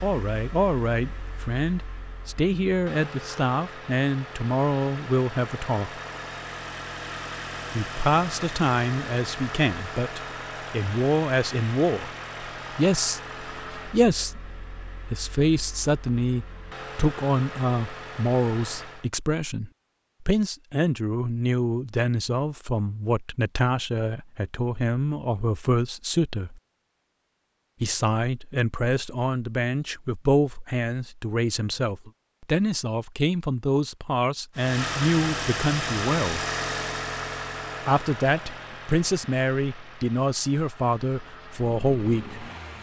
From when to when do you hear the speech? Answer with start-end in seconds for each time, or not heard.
0.0-6.0, 7.8-12.1, 12.8-26.6, 27.8-36.4, 37.9-42.4.